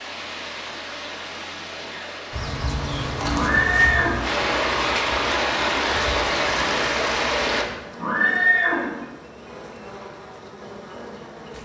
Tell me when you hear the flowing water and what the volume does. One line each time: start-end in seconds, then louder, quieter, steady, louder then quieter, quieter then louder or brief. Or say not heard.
0.0-7.7 louder.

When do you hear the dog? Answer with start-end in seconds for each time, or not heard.
not heard.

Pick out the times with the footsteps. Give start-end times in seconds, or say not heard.
not heard.